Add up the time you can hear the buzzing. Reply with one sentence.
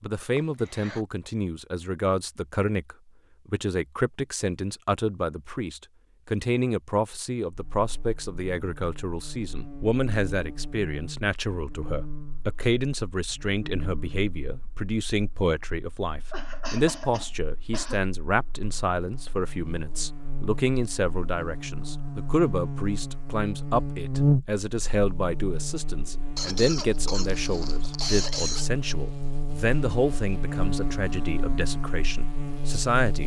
You can hear the buzzing for 26 seconds altogether.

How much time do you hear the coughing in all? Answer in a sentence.
You can hear the coughing for 5 seconds altogether.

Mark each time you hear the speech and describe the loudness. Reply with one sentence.
The speech can be heard from 0.0 to 33.2 s, at a steady volume.